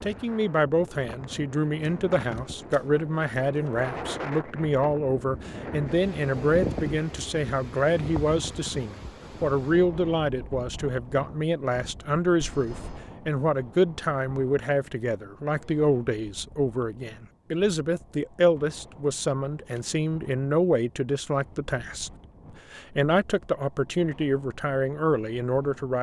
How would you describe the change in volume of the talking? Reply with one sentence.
The volume of the talking stays about the same.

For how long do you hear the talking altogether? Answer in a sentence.
The talking can be heard for 25 seconds in total.